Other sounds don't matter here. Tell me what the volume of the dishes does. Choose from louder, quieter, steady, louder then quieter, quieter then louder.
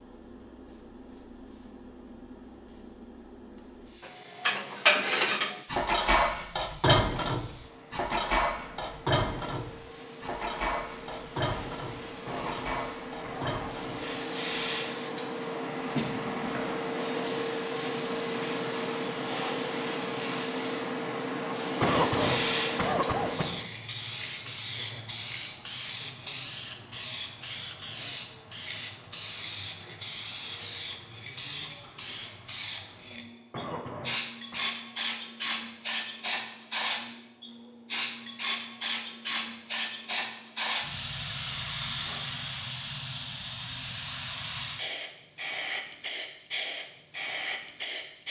quieter.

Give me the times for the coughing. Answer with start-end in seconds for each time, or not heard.
12.2-13.6, 21.8-23.6, 33.5-34.6.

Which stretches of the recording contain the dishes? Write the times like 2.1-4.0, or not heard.
4.0-14.2.